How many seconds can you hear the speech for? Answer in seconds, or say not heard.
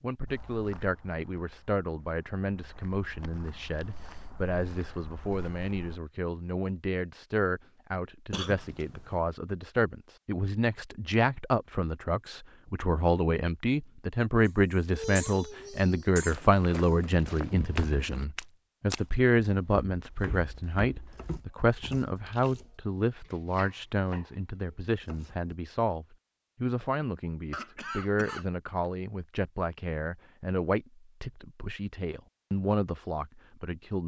34 s.